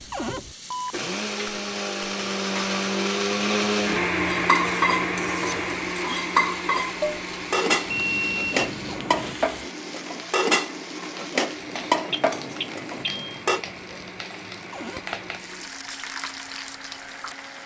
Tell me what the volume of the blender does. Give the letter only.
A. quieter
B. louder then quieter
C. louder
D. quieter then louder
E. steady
A.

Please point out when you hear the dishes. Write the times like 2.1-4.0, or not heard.
4.3-13.6.